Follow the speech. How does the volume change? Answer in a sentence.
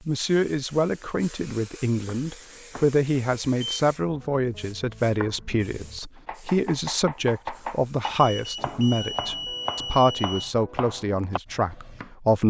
The volume of the speech stays about the same.